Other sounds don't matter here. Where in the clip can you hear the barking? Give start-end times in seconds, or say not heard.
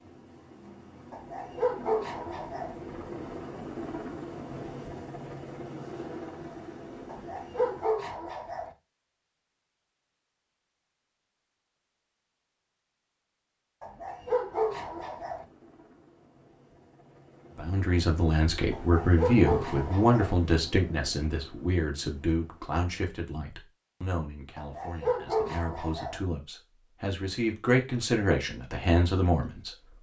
1.1-2.8, 7.0-8.7, 13.8-15.4, 18.7-20.4, 24.6-26.2.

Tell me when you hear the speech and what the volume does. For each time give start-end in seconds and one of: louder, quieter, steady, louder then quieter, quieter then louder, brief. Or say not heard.
17.6-29.7 quieter then louder.